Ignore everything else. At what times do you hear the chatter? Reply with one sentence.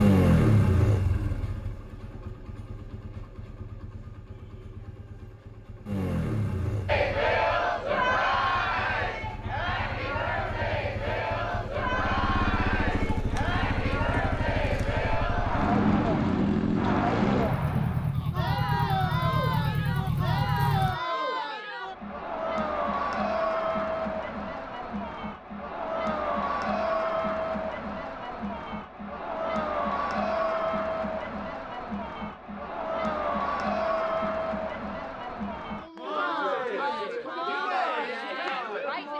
You can hear the chatter from 6.8 to 39.1 s.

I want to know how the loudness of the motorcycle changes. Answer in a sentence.
The loudness of the motorcycle goes down, then up.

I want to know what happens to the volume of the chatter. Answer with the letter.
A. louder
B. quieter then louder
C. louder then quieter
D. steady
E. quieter
D.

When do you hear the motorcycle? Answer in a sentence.
You can hear the motorcycle from 0.0 to 21.0 s.